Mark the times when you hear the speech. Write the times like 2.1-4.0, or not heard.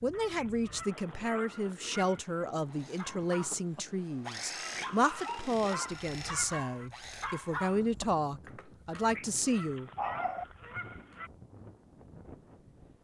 0.0-9.9.